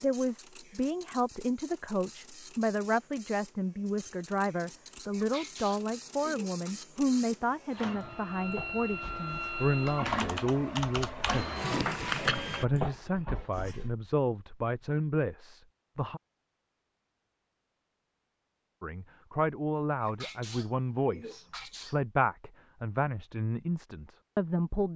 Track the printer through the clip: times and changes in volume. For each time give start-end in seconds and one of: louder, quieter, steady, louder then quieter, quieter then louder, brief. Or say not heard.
0.0-12.7 louder.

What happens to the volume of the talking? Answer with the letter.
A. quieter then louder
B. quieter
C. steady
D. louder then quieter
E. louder
C.